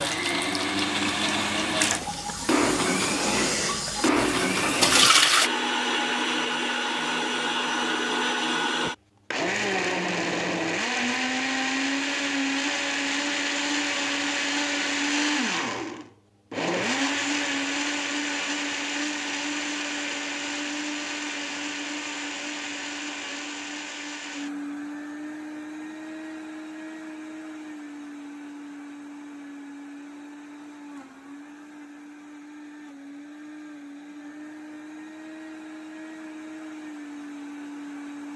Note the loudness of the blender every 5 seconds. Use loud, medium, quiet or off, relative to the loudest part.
loud, loud, loud, loud, medium, quiet, quiet, quiet.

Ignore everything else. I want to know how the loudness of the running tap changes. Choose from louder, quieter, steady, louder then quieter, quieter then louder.
louder.